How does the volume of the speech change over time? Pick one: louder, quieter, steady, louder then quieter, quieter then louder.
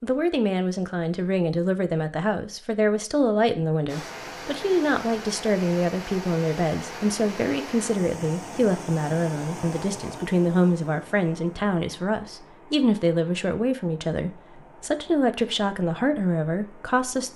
steady.